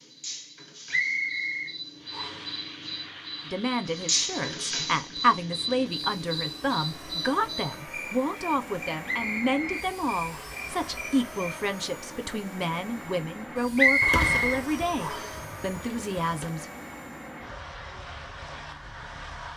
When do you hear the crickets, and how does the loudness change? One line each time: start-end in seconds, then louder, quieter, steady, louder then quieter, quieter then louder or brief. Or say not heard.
0.0-11.5 louder then quieter.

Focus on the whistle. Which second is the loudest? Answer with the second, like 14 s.
14 s.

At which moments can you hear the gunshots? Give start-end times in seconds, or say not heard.
14.0-16.5.